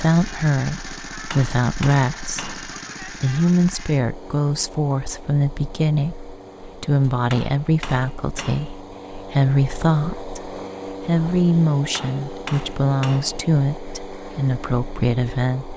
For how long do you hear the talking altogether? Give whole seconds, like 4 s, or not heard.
16 s.